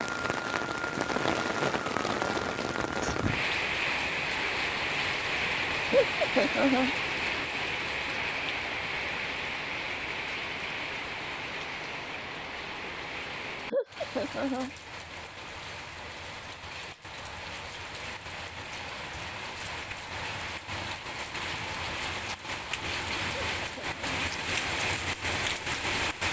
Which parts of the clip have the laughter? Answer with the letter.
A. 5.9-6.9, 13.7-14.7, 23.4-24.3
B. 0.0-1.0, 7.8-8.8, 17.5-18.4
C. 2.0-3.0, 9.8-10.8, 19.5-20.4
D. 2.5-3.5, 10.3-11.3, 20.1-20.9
A.